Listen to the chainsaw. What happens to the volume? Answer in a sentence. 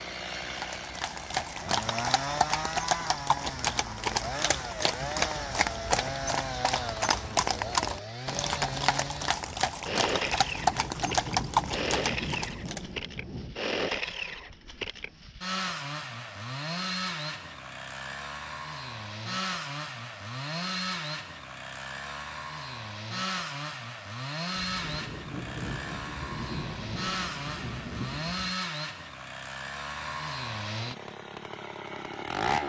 The volume of the chainsaw stays about the same.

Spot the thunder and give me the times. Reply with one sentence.
The thunder can be heard from 10.2 to 13.6 s and from 24.6 to 28.6 s.